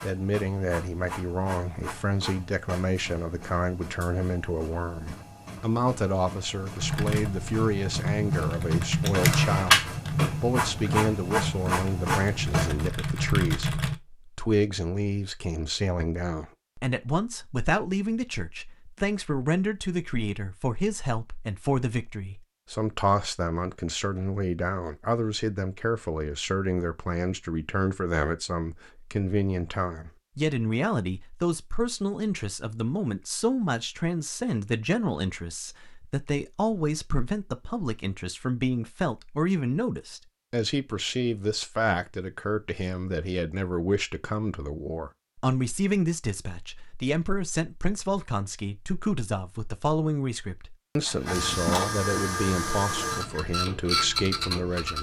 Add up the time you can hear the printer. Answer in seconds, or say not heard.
17 s.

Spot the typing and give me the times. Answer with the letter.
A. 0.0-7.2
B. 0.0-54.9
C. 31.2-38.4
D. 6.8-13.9
D.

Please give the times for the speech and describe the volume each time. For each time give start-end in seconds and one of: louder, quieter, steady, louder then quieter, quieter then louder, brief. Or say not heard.
0.0-54.9 steady.